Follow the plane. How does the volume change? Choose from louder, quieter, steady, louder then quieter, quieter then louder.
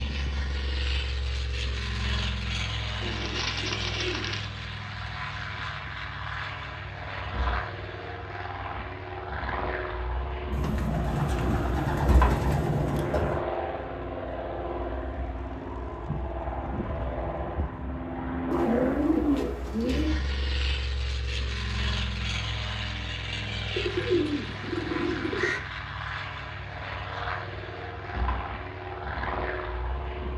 steady.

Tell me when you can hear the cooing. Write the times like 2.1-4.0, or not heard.
3.0-4.5, 10.5-13.4, 18.5-20.1, 23.7-25.6.